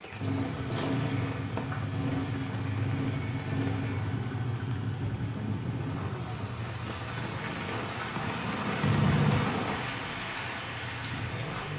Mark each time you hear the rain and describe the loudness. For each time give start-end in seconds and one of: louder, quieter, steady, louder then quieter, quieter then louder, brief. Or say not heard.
0.0-11.7 louder.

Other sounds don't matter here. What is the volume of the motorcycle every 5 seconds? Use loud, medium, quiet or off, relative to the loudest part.
loud, medium, medium.